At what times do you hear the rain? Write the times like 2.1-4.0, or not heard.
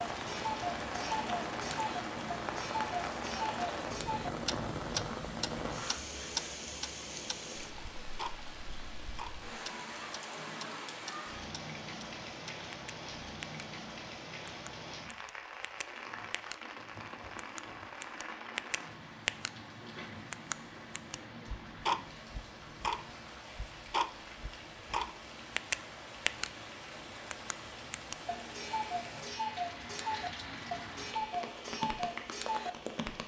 0.0-33.2.